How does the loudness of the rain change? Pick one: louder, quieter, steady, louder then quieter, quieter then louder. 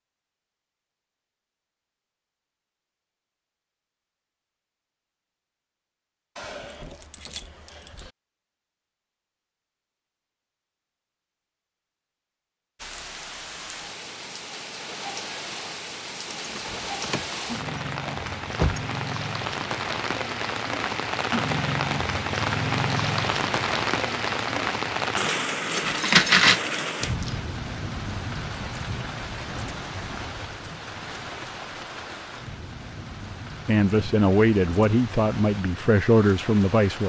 louder then quieter.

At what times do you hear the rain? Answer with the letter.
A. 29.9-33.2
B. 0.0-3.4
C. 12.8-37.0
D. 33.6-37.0
C.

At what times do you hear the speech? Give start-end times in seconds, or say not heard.
33.6-37.0.